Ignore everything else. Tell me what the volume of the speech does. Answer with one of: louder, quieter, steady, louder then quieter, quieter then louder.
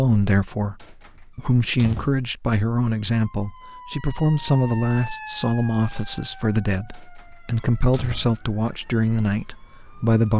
steady.